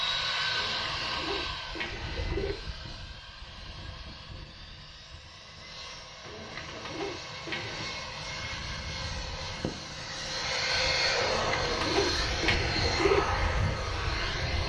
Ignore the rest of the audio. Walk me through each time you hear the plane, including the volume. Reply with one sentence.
You can hear the plane from 0.0 to 14.6 s, getting quieter then louder.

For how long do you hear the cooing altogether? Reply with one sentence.
You can hear the cooing for 6 seconds altogether.